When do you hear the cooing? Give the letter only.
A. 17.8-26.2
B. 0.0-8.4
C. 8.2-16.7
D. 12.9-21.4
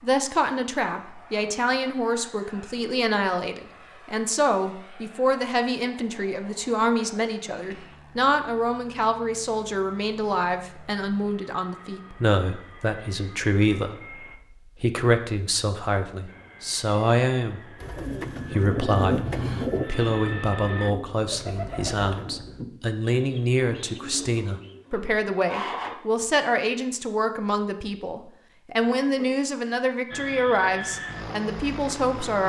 A.